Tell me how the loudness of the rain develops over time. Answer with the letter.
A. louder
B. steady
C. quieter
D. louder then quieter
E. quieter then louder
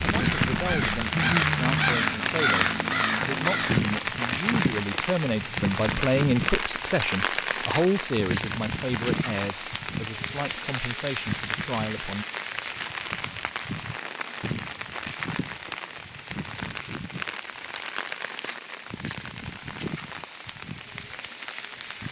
C.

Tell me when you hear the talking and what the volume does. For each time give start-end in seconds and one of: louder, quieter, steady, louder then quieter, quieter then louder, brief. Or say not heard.
0.0-12.2 louder then quieter.